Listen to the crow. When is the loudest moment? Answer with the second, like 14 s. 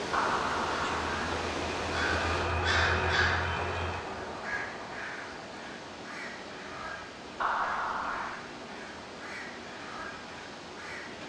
3 s.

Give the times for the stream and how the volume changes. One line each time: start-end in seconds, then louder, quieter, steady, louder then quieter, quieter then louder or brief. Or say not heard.
0.0-11.2 quieter.